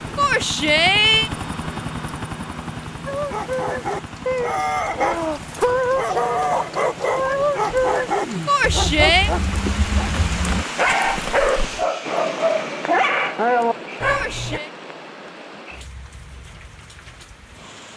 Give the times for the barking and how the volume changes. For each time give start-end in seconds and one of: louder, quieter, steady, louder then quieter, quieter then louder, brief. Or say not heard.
3.0-14.6 steady.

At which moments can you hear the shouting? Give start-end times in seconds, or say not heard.
0.1-1.3, 8.4-9.3, 14.1-14.7.